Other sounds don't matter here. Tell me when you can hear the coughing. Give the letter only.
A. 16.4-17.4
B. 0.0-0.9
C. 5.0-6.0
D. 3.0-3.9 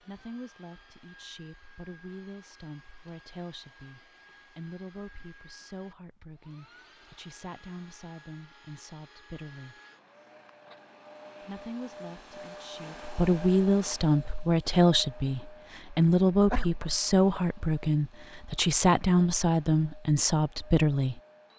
A.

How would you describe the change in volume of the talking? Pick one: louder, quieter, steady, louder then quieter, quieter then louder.
louder.